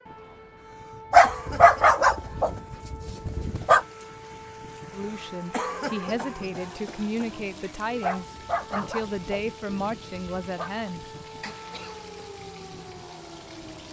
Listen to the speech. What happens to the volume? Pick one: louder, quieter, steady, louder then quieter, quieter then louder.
steady.